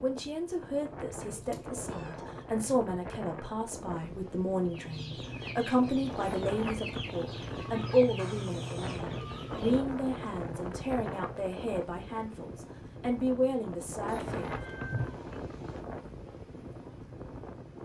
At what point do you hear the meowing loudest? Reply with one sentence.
The volume of the meowing peaks at 15 seconds.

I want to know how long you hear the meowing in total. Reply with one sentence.
You can hear the meowing for 3 seconds altogether.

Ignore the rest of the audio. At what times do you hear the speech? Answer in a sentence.
You can hear the speech from 0.0 to 14.8 s.